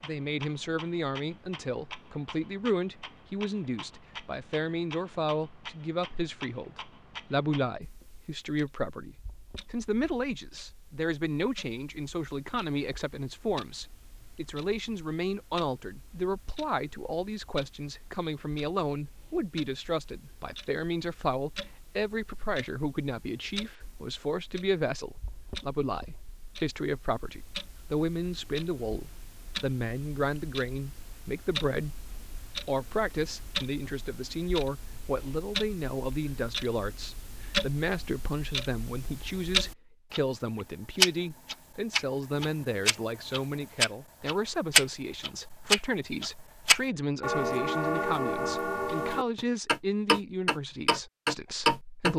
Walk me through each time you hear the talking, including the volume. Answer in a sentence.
The talking can be heard from 0.0 to 52.1 s, at a steady volume.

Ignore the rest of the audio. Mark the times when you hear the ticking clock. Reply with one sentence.
You can hear the ticking clock from 0.0 to 52.1 s.